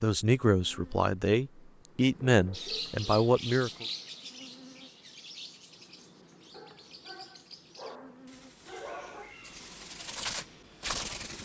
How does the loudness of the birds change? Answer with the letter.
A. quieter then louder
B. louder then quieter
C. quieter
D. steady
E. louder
A.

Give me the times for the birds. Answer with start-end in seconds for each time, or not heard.
2.5-11.3.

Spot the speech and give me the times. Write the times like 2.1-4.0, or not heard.
0.0-3.9.